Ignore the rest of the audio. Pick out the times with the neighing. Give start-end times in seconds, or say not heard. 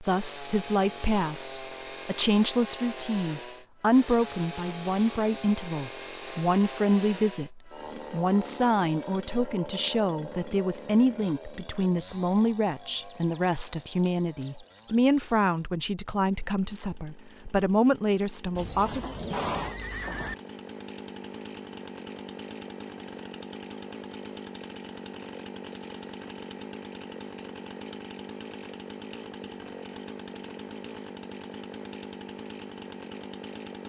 12.9-14.9, 18.6-20.4.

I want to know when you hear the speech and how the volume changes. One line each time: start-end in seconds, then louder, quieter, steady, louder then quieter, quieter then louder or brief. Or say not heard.
0.0-19.1 steady.